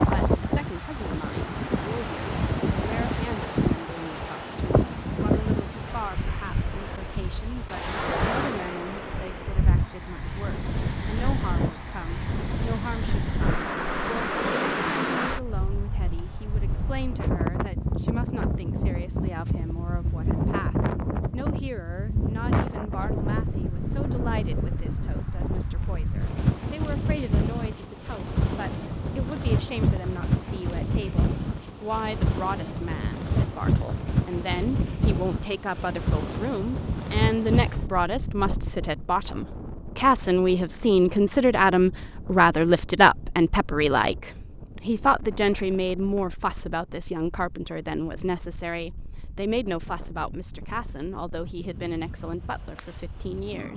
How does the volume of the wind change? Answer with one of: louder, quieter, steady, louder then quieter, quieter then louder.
quieter.